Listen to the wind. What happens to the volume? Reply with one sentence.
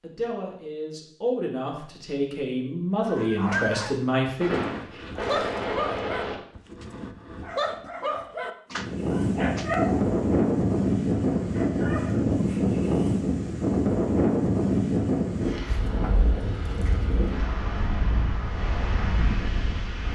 The loudness of the wind goes down.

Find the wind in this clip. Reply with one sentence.
The wind can be heard from 8.7 to 20.1 s.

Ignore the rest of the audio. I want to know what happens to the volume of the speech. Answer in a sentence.
The volume of the speech goes up.